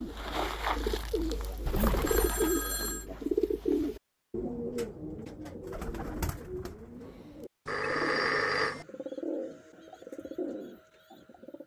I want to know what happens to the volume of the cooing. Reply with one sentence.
The volume of the cooing goes down.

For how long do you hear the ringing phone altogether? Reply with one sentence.
You can hear the ringing phone for 2 seconds altogether.